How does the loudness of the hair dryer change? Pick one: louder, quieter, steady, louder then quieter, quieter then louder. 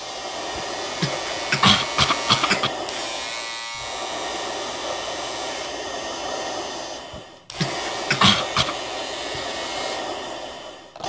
steady.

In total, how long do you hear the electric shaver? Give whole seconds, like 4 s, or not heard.
11 s.